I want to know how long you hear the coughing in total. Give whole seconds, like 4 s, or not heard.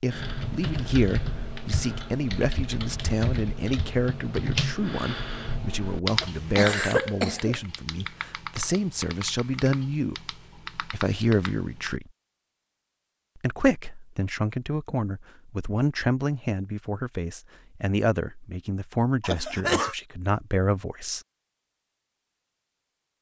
2 s.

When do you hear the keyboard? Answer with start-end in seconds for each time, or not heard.
0.1-11.9.